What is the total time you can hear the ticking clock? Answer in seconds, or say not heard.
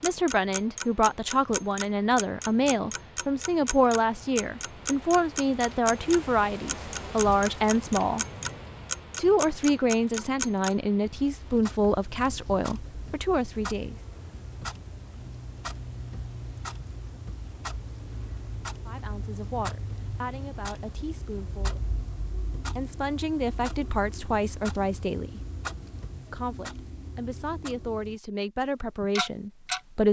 29 s.